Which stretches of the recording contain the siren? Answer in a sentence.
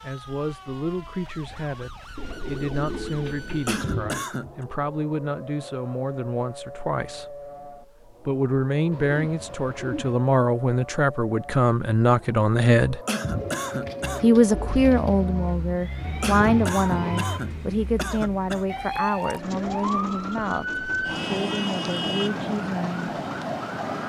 You can hear the siren from 0.0 to 24.0 s.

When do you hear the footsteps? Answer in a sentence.
The footsteps can't be heard in this clip.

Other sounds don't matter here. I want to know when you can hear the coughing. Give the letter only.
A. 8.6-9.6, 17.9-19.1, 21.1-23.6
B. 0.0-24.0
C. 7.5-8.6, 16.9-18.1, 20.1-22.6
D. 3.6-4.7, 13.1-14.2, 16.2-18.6
D.